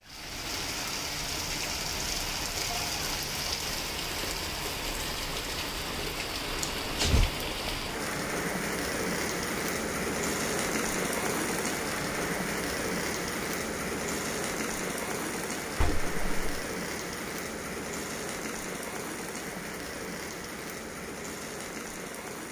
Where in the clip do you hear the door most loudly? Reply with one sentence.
The loudest moment of the door is at 7 seconds.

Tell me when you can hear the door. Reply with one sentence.
You can hear the door from 6.6 to 7.2 s and from 15.8 to 16.6 s.